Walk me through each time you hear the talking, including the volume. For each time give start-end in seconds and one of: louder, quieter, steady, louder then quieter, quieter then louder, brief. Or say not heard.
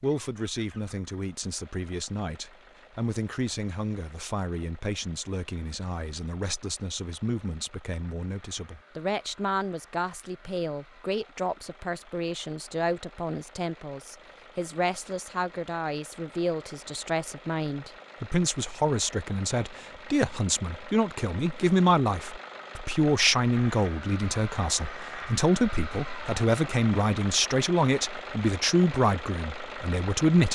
0.0-30.5 louder.